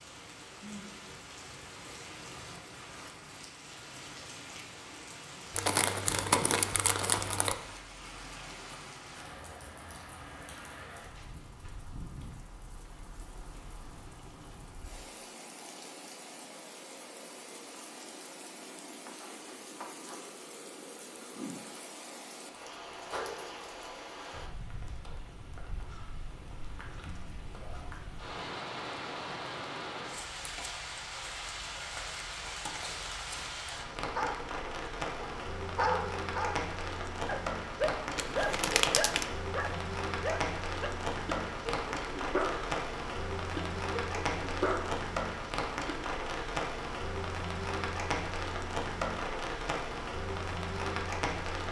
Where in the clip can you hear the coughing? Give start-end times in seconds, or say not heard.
not heard.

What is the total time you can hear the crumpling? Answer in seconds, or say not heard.
3 s.